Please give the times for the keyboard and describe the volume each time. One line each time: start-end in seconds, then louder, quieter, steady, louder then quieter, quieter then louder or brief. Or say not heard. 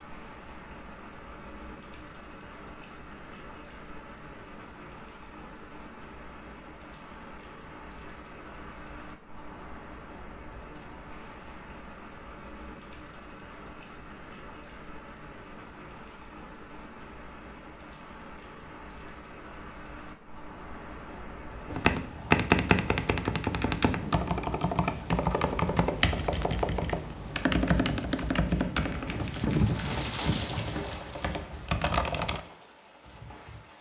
21.6-32.4 quieter.